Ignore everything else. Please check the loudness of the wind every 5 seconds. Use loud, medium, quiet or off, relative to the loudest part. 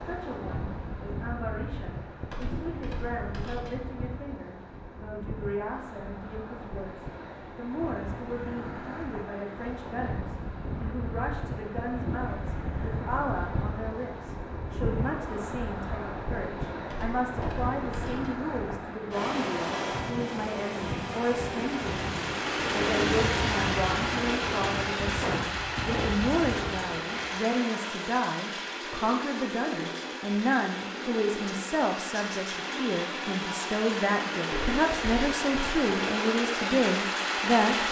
medium, medium, loud, loud, loud, loud, off, off.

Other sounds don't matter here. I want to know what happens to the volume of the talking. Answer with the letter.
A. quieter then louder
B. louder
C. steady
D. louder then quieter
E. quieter
B.